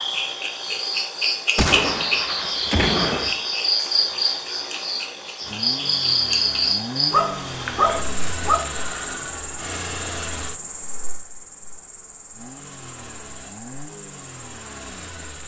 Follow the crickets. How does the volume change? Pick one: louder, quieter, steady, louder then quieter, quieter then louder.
quieter.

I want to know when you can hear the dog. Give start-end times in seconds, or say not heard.
7.1-8.7.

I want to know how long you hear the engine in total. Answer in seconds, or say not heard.
8 s.